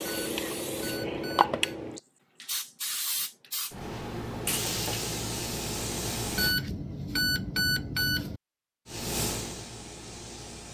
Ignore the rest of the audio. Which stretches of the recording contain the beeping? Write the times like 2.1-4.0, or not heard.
0.0-1.6, 6.3-8.4.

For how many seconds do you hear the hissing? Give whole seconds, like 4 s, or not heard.
8 s.